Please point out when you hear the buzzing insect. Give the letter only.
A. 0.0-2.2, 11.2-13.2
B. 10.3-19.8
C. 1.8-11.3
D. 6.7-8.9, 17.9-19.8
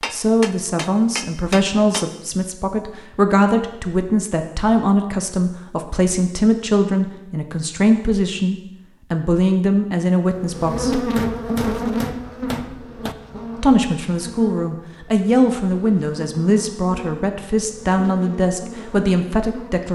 B.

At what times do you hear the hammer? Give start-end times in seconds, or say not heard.
0.0-2.2, 11.2-13.2.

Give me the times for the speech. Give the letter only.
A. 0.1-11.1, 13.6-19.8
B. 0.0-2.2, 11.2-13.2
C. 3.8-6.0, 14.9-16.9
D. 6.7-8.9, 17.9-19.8
A.